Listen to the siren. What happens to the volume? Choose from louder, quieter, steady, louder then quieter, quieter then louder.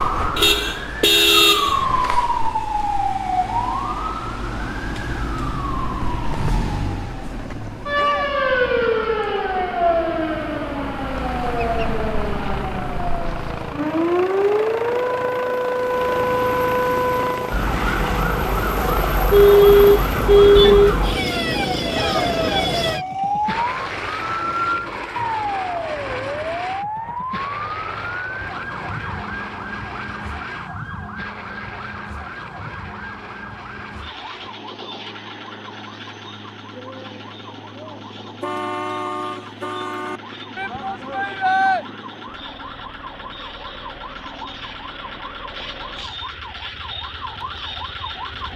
quieter.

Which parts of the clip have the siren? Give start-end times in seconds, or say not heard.
0.0-48.5.